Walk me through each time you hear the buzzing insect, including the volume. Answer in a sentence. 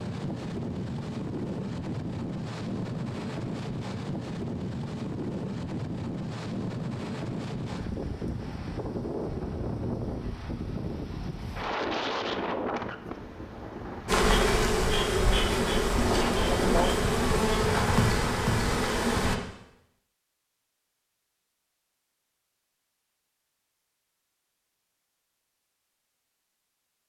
You can hear the buzzing insect from 14.1 to 19.4 s, at a steady volume.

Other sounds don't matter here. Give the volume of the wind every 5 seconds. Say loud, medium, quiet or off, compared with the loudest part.
loud, loud, loud, loud, off, off.